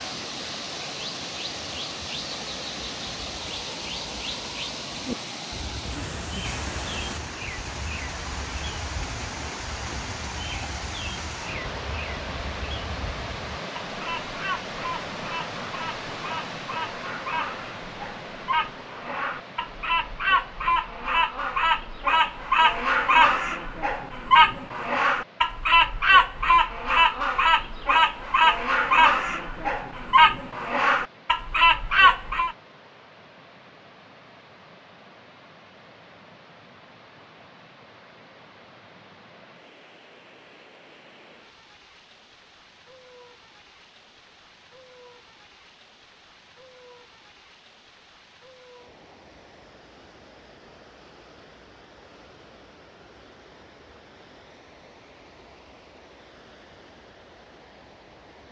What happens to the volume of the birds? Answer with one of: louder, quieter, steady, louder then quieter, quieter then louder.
louder.